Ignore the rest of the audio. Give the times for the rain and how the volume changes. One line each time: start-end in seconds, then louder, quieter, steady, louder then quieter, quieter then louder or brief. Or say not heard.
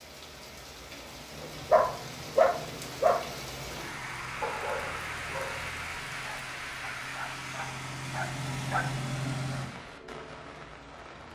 0.0-11.3 louder then quieter.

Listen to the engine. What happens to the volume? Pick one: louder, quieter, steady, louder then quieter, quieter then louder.
louder.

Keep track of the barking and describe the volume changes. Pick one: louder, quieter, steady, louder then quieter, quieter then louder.
quieter then louder.